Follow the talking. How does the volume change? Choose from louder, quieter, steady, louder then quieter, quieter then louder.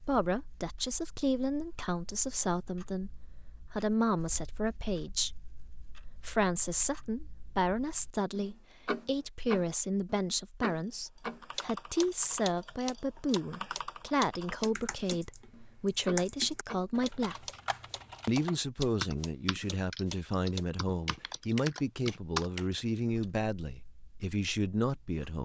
steady.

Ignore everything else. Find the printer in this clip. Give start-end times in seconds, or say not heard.
not heard.